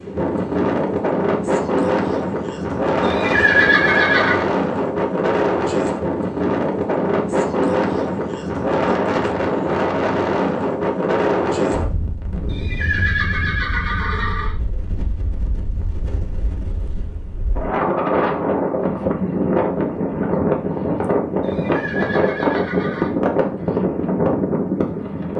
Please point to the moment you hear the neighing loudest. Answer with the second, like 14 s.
4 s.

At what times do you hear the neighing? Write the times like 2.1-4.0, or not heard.
3.0-4.5, 12.4-14.6, 21.4-23.1.